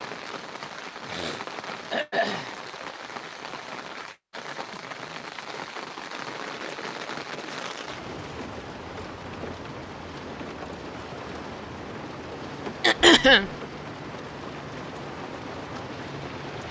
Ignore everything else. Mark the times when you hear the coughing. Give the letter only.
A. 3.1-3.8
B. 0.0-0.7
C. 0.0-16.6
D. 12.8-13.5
D.